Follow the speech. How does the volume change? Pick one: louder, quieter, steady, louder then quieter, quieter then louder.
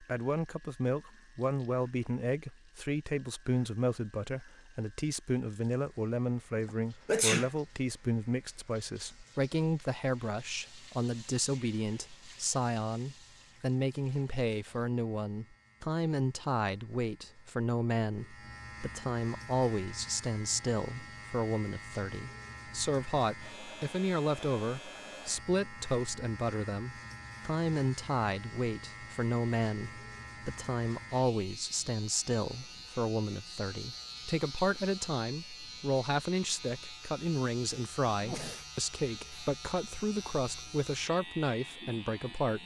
steady.